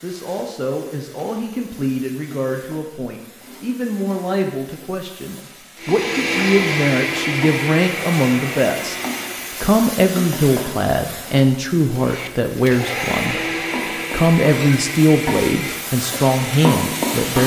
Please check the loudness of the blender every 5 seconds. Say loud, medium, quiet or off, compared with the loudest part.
off, loud, loud, medium.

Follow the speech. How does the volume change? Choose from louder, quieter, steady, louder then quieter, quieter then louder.
louder.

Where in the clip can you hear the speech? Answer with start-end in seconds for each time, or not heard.
0.0-8.9, 9.6-13.4, 14.1-17.4.